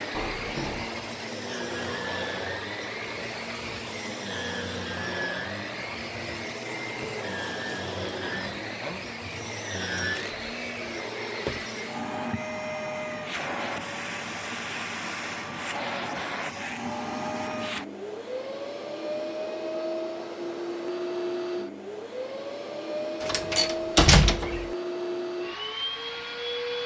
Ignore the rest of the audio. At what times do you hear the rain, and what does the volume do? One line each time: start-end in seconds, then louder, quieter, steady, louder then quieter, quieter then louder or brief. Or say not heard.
not heard.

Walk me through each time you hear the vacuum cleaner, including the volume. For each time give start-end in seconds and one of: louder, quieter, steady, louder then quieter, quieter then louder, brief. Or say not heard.
0.0-26.8 steady.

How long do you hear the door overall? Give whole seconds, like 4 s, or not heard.
3 s.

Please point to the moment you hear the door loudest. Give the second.
24 s.